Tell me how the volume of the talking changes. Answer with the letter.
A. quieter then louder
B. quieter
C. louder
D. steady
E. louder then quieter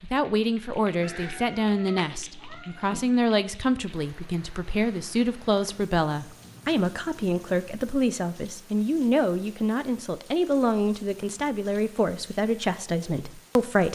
D.